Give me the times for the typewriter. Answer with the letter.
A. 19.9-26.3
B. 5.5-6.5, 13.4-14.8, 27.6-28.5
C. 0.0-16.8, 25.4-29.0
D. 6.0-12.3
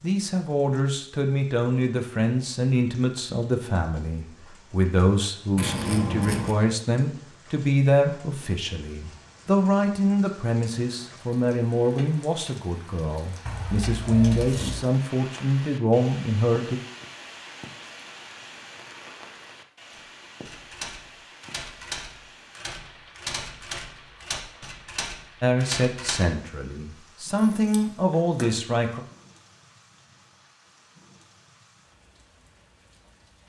A.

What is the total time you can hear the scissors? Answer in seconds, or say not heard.
3 s.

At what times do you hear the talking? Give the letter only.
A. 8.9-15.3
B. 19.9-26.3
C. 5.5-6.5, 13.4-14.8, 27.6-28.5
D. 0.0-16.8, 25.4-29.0
D.